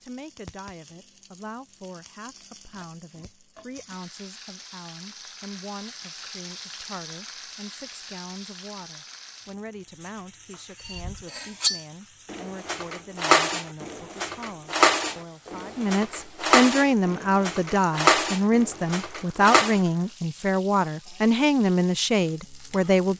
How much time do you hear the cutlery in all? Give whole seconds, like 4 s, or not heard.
9 s.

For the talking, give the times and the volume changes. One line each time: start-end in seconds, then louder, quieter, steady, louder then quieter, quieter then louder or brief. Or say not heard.
0.0-23.1 louder.